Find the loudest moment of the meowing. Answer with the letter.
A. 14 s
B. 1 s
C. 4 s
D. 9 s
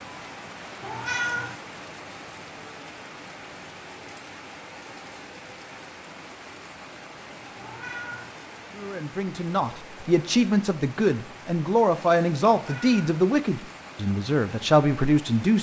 B.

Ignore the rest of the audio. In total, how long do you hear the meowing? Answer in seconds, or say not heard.
2 s.